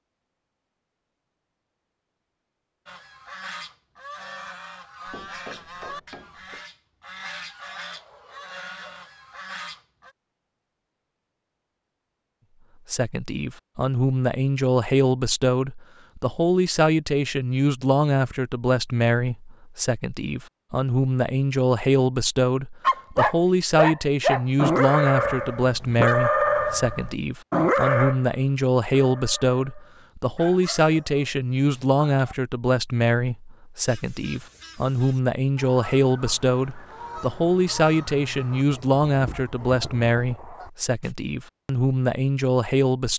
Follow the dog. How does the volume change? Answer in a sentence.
The volume of the dog goes down.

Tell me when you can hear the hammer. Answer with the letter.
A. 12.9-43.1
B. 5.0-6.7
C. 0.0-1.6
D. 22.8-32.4
B.